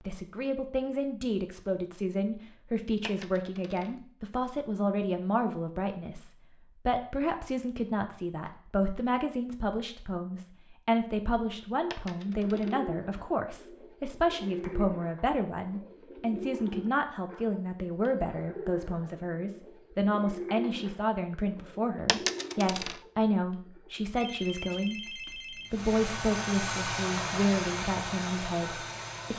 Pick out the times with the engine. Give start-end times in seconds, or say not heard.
25.7-29.3.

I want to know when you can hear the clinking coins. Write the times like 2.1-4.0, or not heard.
3.0-4.0, 11.9-12.8, 22.1-23.0.